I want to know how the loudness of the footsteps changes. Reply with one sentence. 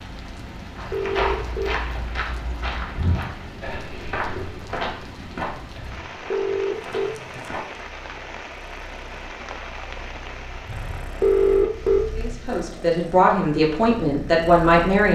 The loudness of the footsteps goes down.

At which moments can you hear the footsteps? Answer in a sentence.
You can hear the footsteps from 0.8 to 7.7 s.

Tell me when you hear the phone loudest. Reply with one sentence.
The volume of the phone peaks at 11 seconds.